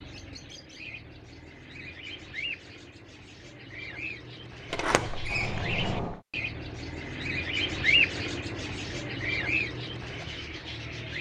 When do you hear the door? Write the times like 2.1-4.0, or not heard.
4.7-6.2.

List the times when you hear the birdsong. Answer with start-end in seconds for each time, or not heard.
0.0-11.1.